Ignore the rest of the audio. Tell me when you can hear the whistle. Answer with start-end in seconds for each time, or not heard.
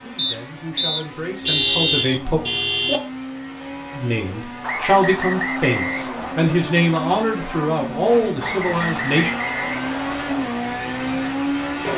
0.1-2.2, 4.6-6.4, 8.4-10.4.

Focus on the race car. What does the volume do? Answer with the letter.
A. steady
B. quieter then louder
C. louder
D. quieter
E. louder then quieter
C.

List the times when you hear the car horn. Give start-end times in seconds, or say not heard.
1.4-3.0.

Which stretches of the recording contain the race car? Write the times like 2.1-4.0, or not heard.
0.0-11.9.